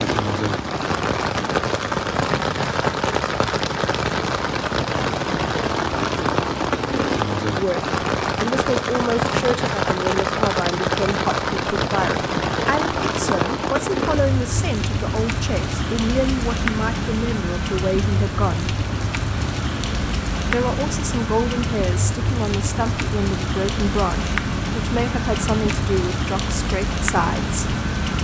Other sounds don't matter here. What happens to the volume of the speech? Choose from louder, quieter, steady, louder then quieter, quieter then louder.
steady.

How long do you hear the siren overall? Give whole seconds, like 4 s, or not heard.
not heard.